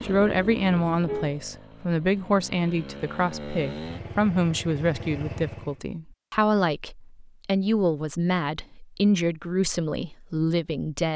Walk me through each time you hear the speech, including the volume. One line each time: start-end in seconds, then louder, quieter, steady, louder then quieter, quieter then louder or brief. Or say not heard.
0.0-11.1 steady.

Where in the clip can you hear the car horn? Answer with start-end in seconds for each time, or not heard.
0.7-1.4.